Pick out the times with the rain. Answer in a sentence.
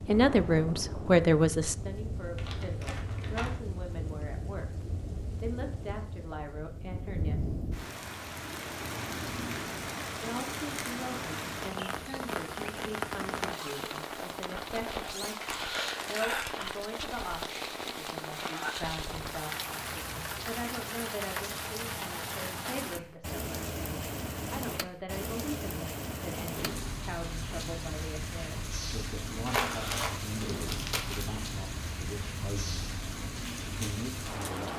You can hear the rain from 0.0 to 34.7 s.